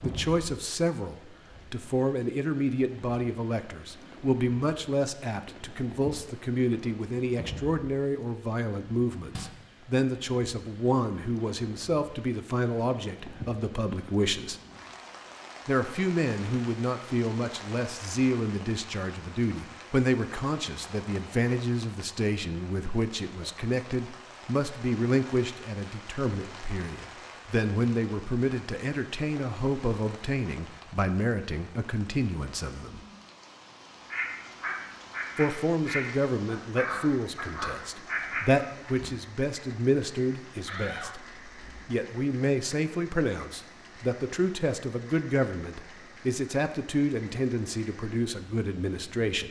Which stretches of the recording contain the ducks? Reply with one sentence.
The ducks can be heard from 34.0 to 39.1 s.